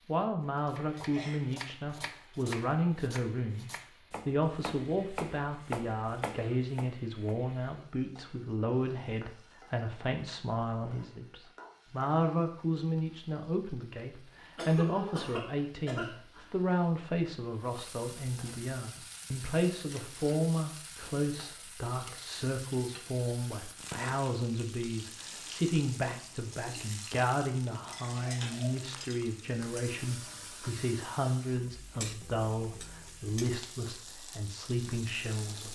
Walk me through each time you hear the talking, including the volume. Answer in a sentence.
The talking can be heard from 0.1 to 35.7 s, at a steady volume.